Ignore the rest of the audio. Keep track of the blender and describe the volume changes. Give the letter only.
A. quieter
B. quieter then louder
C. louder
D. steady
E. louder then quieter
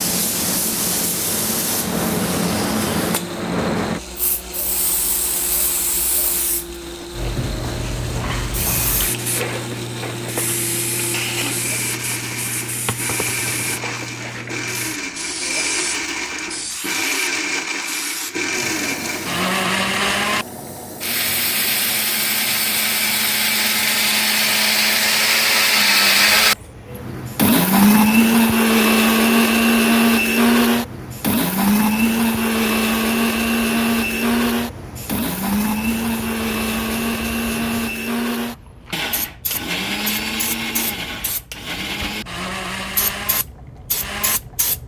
E.